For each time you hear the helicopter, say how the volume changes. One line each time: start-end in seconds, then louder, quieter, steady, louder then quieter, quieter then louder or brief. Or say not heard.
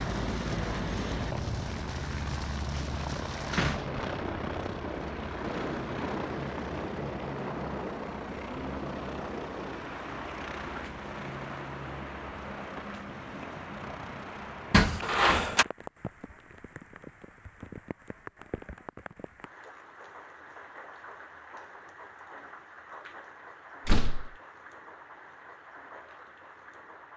0.0-15.6 quieter.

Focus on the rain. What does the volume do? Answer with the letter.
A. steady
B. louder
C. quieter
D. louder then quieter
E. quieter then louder
C.